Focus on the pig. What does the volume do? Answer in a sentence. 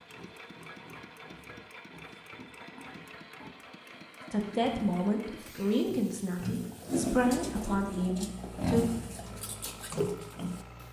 The volume of the pig goes up.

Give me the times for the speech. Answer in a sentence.
The speech can be heard from 4.3 to 8.8 s.